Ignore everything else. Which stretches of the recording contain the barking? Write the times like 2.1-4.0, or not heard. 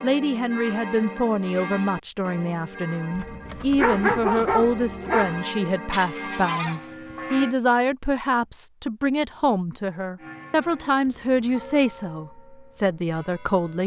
3.1-5.5.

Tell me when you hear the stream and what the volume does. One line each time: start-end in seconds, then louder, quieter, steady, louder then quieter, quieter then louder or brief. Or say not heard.
not heard.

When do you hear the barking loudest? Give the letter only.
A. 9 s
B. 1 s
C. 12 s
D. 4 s
D.